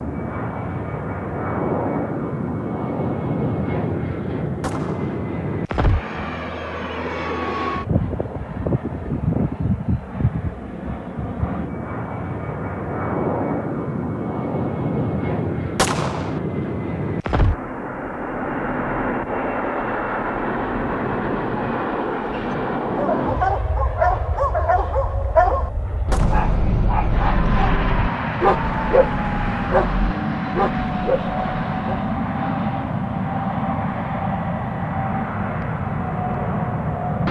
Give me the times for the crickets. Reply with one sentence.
You can't hear the crickets here.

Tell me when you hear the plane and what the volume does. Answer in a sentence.
You can hear the plane from 0.0 to 37.2 s, at a steady volume.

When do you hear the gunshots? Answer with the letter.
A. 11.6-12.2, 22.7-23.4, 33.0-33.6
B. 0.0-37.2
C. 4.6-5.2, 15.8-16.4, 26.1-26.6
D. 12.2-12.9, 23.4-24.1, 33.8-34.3
C.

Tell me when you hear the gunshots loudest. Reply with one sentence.
The volume of the gunshots peaks at 16 seconds.